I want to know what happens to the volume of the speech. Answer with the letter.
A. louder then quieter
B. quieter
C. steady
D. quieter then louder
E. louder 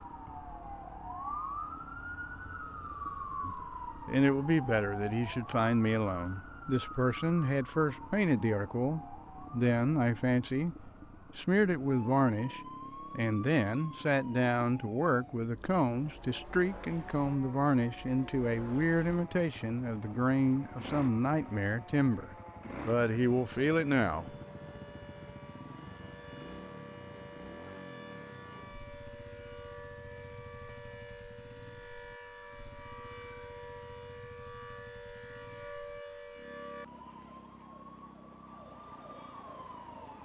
C.